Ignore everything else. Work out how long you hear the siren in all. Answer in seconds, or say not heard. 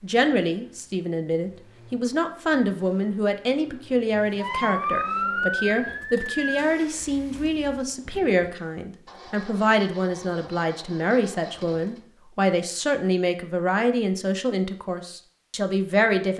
2 s.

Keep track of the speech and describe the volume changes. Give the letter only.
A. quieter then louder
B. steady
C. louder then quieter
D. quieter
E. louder
B.